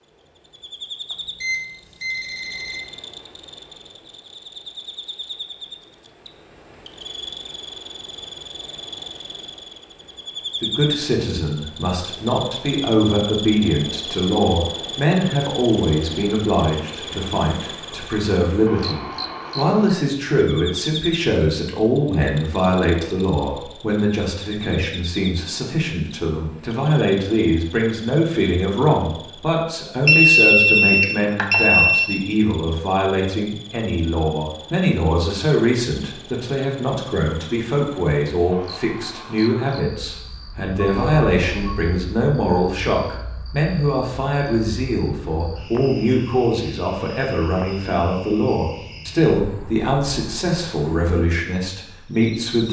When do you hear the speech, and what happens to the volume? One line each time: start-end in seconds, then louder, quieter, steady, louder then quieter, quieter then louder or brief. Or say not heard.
10.6-52.6 steady.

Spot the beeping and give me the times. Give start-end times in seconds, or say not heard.
1.1-2.8, 30.1-32.0, 40.8-41.8.